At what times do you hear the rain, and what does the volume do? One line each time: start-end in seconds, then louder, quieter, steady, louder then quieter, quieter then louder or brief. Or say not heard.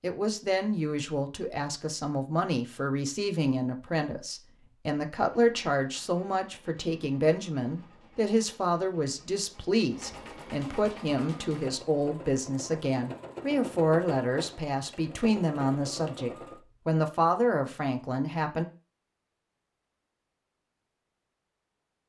not heard.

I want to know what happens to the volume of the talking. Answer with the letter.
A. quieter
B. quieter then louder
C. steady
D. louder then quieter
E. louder
C.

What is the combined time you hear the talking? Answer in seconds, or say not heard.
19 s.